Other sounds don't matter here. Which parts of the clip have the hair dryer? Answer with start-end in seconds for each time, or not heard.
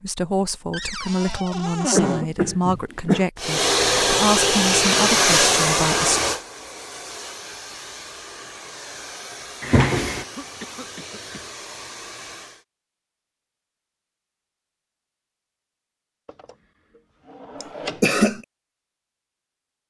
3.4-12.7.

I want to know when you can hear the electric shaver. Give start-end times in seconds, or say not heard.
not heard.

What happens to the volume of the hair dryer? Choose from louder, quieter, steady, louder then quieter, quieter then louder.
quieter.